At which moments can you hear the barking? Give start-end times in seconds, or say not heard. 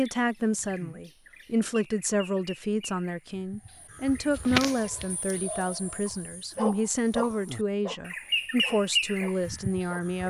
4.8-10.2.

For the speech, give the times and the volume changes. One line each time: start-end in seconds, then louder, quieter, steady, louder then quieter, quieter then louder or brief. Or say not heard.
0.0-10.2 steady.